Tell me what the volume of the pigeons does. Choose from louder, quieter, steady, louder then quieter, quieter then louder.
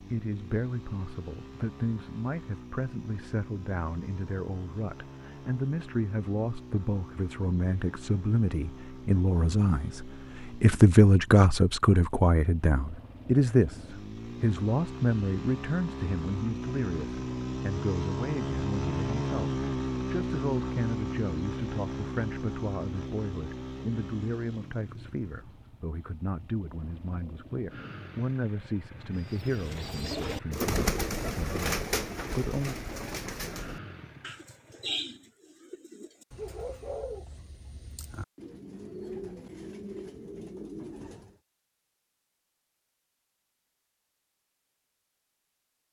quieter.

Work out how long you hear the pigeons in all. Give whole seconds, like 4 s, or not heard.
12 s.